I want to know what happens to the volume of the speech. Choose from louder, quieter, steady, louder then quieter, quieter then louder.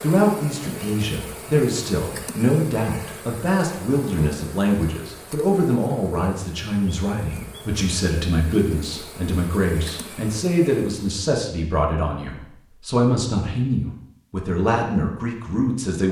steady.